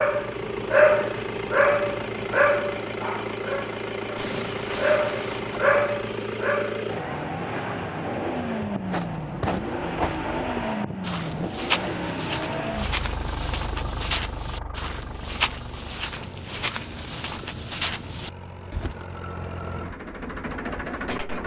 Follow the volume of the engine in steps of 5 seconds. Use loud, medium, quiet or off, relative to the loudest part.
loud, loud, loud, medium, loud.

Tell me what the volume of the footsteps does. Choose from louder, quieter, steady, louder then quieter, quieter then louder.
steady.